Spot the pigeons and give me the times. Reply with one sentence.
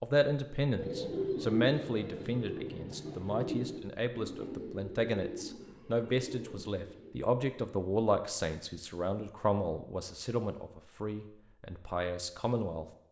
The pigeons can be heard from 0.8 to 7.1 s.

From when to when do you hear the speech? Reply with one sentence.
The speech can be heard from 0.0 to 12.8 s.